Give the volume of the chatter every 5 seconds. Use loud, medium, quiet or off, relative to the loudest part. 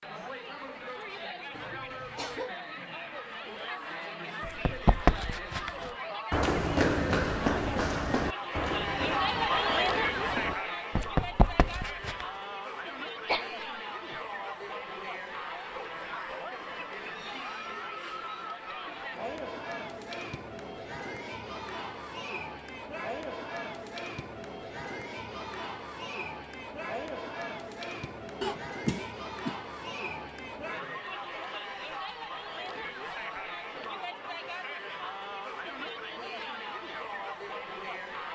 medium, loud, loud, medium, medium, medium, medium, medium.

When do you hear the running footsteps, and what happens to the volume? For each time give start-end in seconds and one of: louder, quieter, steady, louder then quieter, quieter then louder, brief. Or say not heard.
4.4-12.2 quieter then louder.